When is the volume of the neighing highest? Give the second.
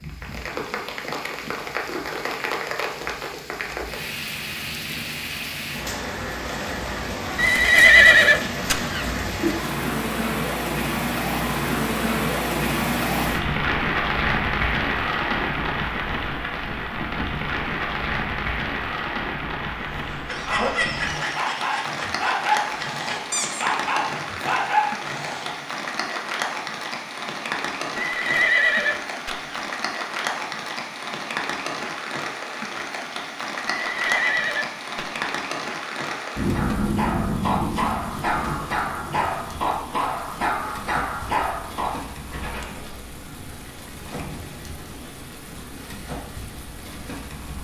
8 s.